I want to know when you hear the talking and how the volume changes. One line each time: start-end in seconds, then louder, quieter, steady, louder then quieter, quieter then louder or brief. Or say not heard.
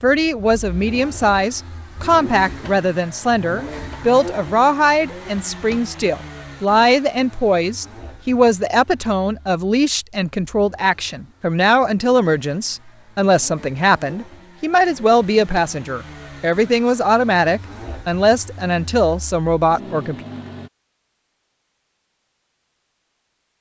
0.0-20.1 steady.